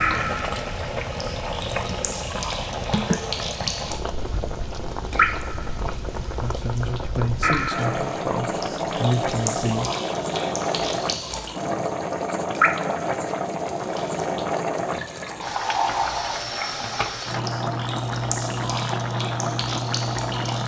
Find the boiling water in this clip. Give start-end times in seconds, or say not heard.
0.0-20.6.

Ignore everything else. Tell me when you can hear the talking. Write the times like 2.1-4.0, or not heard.
6.3-9.9.